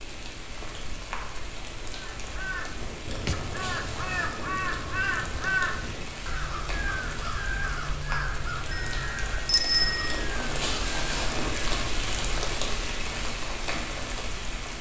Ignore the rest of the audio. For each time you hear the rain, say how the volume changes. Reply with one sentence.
You can hear the rain from 0.0 to 14.7 s, getting louder.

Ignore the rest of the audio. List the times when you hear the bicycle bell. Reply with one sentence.
The bicycle bell can be heard from 8.7 to 10.2 s.